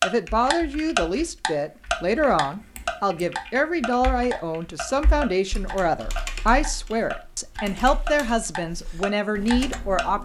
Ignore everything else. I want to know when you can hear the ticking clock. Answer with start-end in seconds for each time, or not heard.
0.0-10.1.